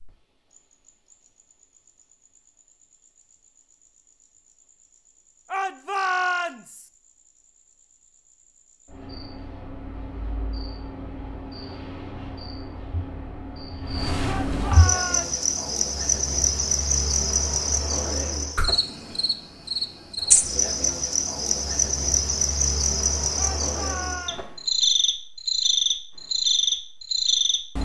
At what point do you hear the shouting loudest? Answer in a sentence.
The loudest moment of the shouting is at 6 seconds.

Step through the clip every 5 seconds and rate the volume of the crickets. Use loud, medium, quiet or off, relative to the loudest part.
quiet, quiet, medium, loud, loud, loud.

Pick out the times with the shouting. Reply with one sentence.
You can hear the shouting from 5.5 to 6.8 s, from 14.2 to 15.4 s and from 23.4 to 24.4 s.